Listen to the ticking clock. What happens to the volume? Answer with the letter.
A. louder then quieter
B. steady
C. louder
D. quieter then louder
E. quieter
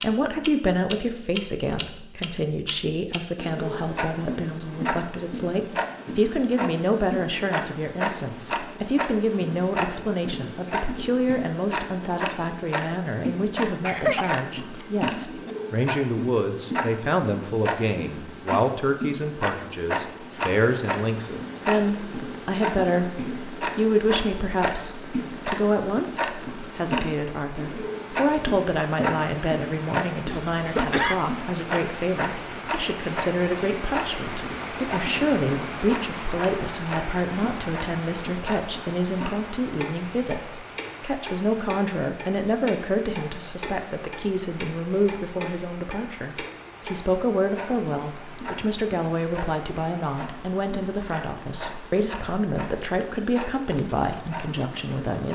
E.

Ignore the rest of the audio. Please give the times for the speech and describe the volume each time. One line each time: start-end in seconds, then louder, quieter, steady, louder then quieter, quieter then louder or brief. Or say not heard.
0.0-55.3 steady.